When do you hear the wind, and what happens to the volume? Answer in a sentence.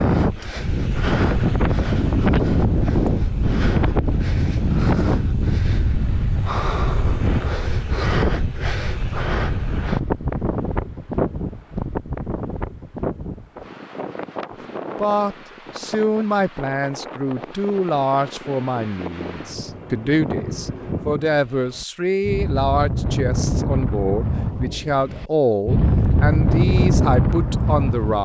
The wind can be heard from 0.0 to 28.2 s, getting quieter then louder.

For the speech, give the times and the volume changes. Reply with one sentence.
You can hear the speech from 14.5 to 28.2 s, at a steady volume.